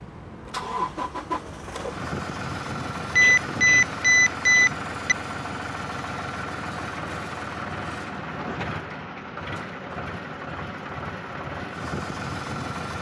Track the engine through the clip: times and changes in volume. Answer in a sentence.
You can hear the engine from 0.0 to 12.9 s, at a steady volume.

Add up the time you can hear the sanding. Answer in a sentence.
The sanding can't be heard in this clip.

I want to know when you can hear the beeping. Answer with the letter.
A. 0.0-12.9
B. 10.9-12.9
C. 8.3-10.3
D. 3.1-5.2
D.